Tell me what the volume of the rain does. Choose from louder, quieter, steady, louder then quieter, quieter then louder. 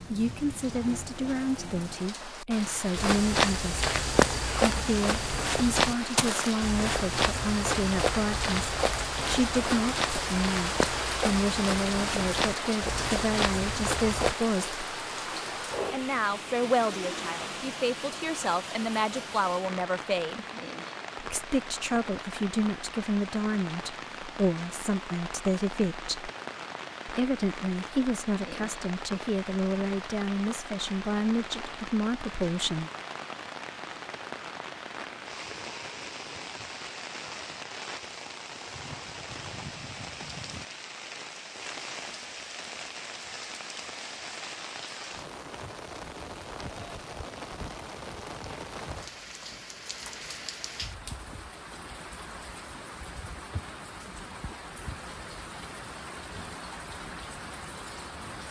quieter.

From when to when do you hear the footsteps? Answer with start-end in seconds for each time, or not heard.
3.0-14.3.